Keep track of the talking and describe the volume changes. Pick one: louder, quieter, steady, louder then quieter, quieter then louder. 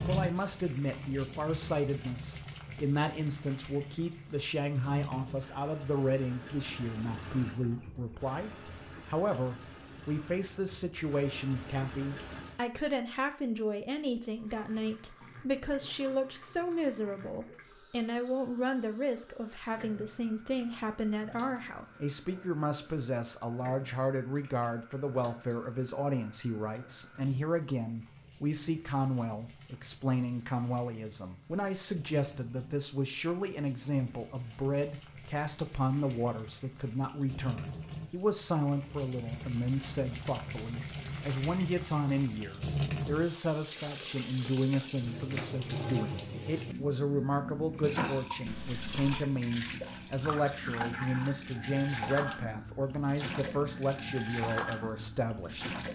steady.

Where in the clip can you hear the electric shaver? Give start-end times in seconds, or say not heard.
not heard.